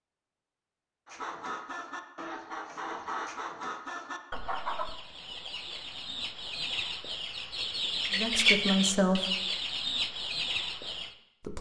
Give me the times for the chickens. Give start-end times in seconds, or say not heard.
1.1-11.2.